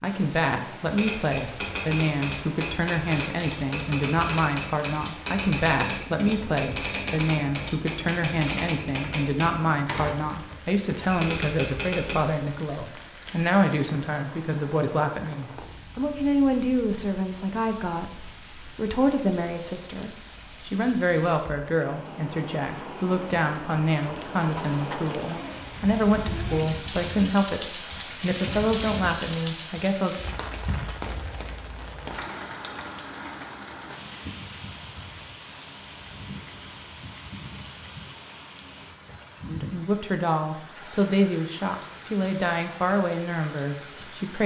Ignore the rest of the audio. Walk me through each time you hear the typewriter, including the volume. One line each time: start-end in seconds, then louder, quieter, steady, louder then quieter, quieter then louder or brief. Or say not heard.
0.8-12.3 steady.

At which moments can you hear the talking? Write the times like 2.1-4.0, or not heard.
0.0-30.2, 39.5-44.4.